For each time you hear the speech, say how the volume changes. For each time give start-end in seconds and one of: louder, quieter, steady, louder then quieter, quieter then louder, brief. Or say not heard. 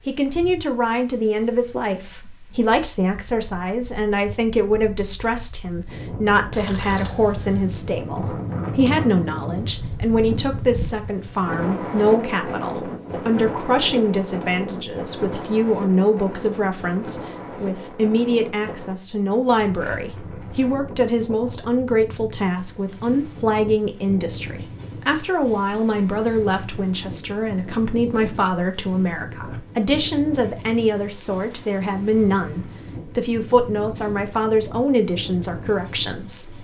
0.1-36.5 steady.